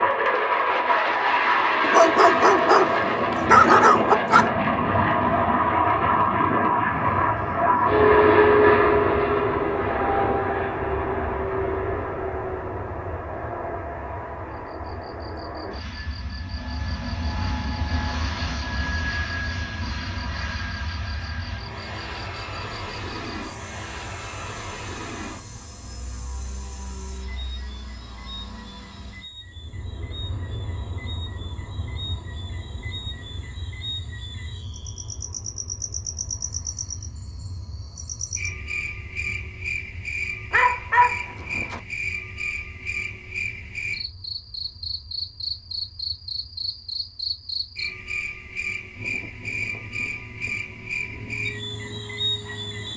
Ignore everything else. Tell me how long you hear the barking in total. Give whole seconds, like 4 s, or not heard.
4 s.